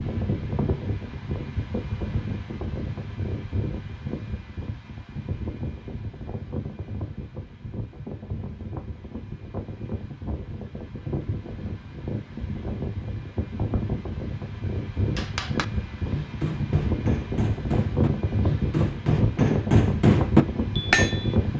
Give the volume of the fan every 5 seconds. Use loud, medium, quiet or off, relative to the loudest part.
medium, medium, medium, loud, loud.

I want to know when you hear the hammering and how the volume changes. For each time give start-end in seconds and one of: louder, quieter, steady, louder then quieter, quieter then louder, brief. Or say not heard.
15.2-21.4 louder.